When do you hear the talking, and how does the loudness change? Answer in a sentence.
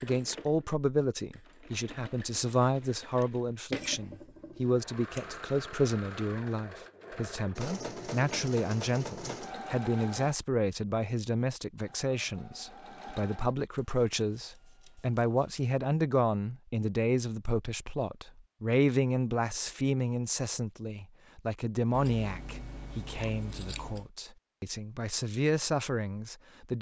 You can hear the talking from 0.0 to 26.7 s, at a steady volume.